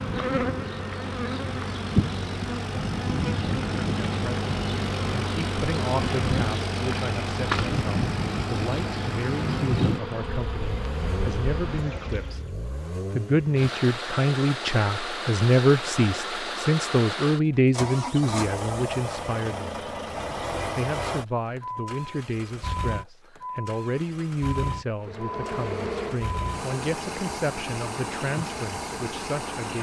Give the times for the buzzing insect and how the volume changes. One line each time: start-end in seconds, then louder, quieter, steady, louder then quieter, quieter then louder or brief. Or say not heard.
0.0-12.5 steady
25.0-29.5 quieter.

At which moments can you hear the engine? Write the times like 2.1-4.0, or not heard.
0.0-29.7.